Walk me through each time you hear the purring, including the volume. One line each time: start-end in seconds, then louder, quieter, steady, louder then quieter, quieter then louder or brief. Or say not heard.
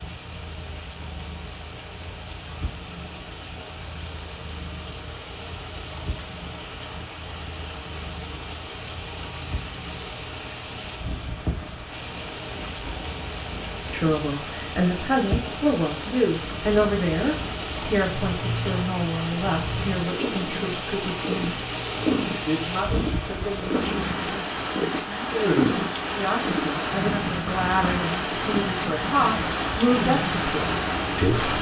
0.0-31.5 louder.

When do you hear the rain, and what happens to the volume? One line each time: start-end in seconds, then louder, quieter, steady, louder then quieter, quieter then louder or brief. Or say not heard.
0.0-31.5 louder.